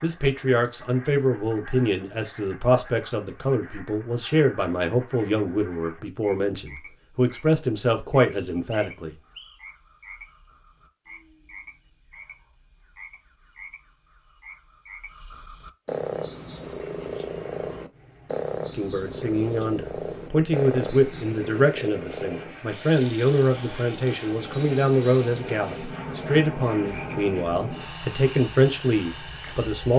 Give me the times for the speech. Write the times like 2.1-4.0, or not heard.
0.0-9.2, 18.8-29.9.